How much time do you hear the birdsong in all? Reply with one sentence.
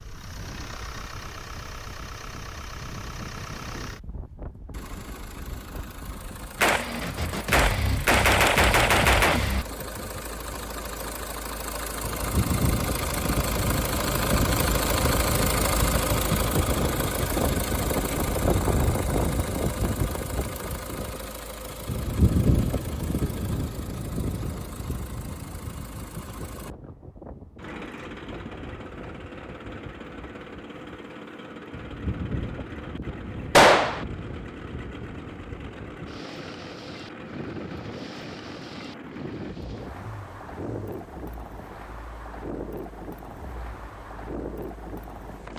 The birdsong can't be heard in this clip.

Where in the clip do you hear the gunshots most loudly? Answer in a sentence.
The loudest moment of the gunshots is at 34 seconds.